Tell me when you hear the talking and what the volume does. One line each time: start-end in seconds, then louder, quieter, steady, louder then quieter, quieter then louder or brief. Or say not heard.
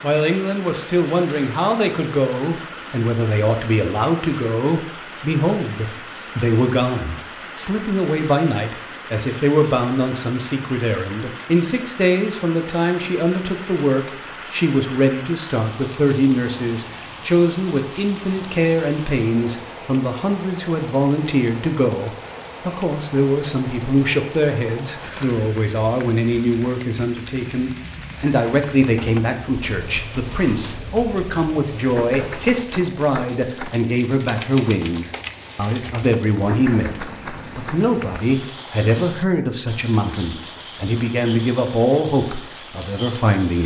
0.0-43.6 steady.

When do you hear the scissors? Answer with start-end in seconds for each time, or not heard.
not heard.